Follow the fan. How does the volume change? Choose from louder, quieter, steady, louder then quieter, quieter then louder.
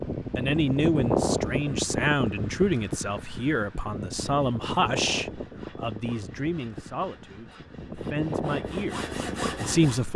quieter then louder.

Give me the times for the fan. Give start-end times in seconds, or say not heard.
0.0-10.1.